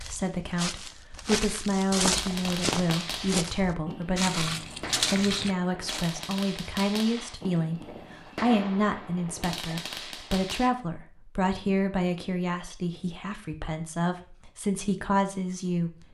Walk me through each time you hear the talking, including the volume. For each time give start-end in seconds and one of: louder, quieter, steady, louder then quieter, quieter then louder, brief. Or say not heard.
0.0-16.0 steady.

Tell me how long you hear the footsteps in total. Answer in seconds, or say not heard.
6 s.